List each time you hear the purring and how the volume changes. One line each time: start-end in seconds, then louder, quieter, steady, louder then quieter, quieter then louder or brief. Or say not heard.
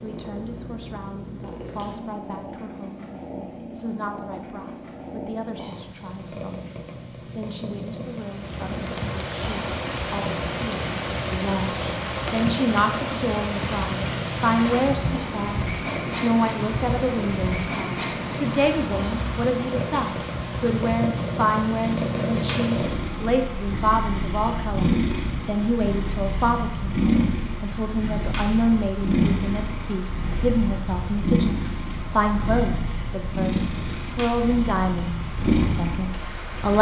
0.0-36.7 louder.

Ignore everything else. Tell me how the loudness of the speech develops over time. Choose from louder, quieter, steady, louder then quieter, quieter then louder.
louder.